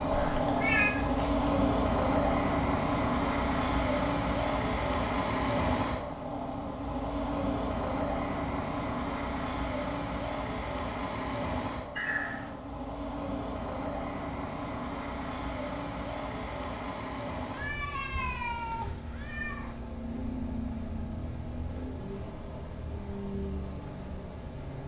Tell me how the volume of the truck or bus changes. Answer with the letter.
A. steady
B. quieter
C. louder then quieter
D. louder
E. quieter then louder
B.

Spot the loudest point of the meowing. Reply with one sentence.
The volume of the meowing peaks at 1 second.